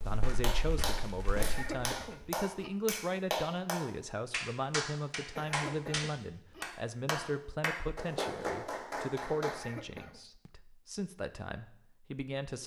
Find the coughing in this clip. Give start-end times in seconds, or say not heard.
1.4-2.7, 5.3-6.7, 9.4-10.2.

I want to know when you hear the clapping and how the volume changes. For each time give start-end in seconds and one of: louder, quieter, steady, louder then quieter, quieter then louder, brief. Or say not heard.
0.4-9.7 steady.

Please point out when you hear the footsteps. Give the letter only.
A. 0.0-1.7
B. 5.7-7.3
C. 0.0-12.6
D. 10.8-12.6
A.